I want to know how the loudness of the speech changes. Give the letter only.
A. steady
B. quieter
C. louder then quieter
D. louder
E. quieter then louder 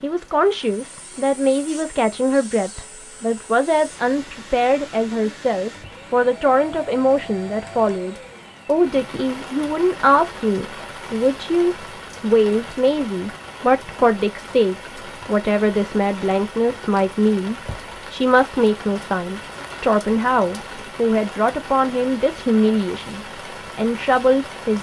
A.